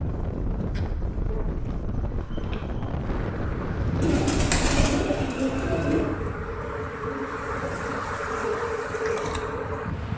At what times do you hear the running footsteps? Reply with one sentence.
You can't hear the running footsteps here.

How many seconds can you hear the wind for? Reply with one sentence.
The wind can be heard for 10 seconds in total.